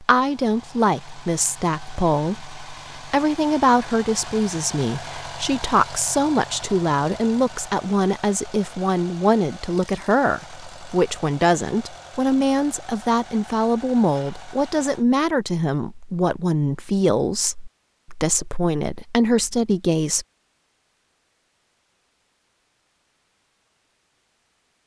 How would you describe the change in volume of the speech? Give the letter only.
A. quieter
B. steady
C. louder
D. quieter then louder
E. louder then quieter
B.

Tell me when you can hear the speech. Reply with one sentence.
The speech can be heard from 0.0 to 20.2 s.